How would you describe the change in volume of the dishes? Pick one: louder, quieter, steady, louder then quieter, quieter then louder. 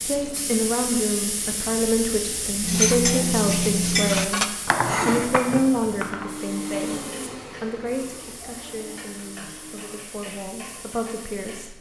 quieter.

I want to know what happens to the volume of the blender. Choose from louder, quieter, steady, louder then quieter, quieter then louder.
quieter.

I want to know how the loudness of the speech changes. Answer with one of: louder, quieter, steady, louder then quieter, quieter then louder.
quieter.